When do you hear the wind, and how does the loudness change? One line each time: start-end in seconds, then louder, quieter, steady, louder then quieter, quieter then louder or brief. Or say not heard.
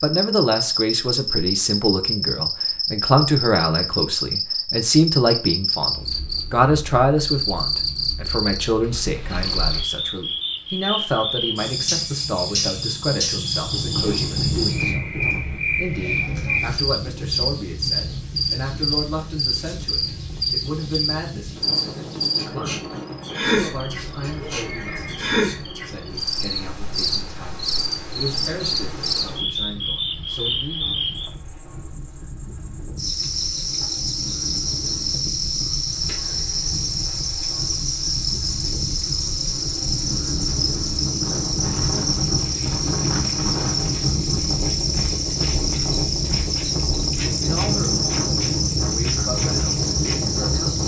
13.6-50.8 quieter then louder.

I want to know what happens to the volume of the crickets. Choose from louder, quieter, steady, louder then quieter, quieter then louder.
steady.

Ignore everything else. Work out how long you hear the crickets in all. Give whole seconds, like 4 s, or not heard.
51 s.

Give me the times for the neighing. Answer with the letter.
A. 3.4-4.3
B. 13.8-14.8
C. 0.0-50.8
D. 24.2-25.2
D.